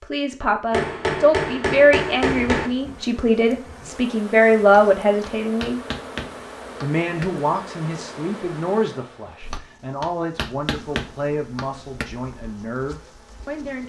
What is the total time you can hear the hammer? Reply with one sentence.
You can hear the hammer for 7 seconds altogether.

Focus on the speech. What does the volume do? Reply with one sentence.
The volume of the speech goes down.